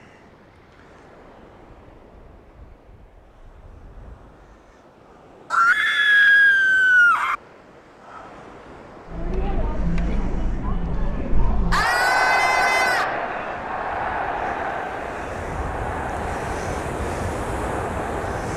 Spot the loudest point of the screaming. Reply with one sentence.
The volume of the screaming peaks at 6 seconds.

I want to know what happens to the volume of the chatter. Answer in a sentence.
The loudness of the chatter goes up, then down.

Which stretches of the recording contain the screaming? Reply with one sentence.
You can hear the screaming from 5.5 to 7.3 s and from 11.7 to 13.2 s.